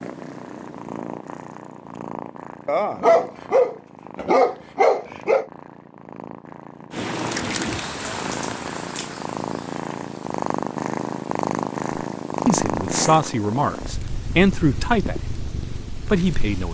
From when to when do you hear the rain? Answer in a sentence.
The rain can be heard from 6.9 to 16.7 s.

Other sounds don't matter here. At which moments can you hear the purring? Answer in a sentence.
You can hear the purring from 0.0 to 16.7 s.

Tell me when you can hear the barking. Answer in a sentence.
The barking can be heard from 2.6 to 5.5 s and from 12.9 to 13.3 s.